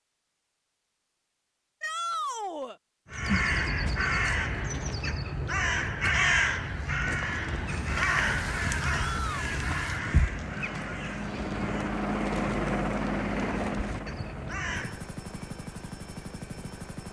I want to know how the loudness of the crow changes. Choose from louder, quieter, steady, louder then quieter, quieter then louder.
quieter.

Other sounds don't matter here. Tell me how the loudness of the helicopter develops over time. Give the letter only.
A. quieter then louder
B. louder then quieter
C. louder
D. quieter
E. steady
B.